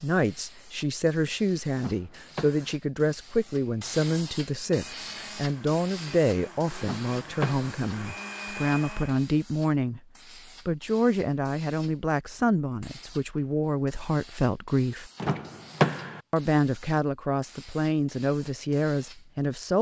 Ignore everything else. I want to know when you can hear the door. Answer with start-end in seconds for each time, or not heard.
1.8-2.8, 6.8-7.7, 15.2-16.2.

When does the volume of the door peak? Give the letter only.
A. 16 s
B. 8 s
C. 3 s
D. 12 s
A.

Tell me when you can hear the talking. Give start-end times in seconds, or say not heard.
0.0-10.0, 10.7-15.1, 16.3-19.7.